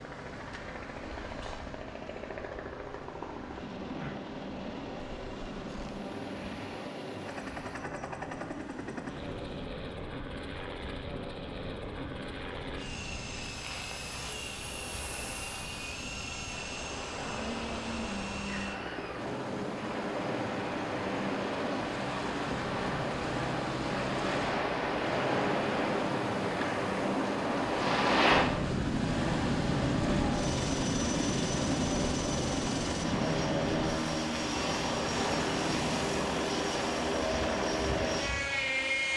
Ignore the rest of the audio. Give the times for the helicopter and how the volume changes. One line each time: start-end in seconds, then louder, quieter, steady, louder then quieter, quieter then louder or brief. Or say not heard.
0.0-39.1 louder.